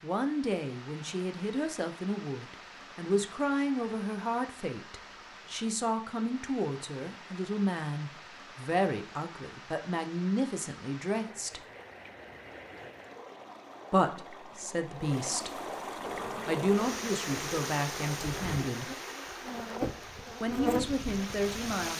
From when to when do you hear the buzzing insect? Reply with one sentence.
The buzzing insect can be heard from 16.0 to 21.9 s.